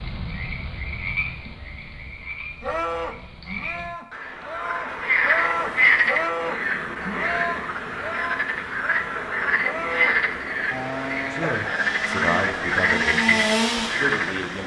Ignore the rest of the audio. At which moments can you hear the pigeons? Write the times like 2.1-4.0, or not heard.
not heard.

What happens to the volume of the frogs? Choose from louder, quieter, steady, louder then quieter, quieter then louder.
louder.